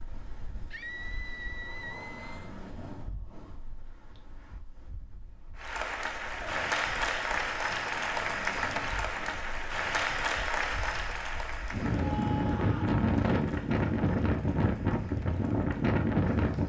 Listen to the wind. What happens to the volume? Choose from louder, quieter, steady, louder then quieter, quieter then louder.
quieter then louder.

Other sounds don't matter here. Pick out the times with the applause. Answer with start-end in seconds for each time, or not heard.
5.5-16.6.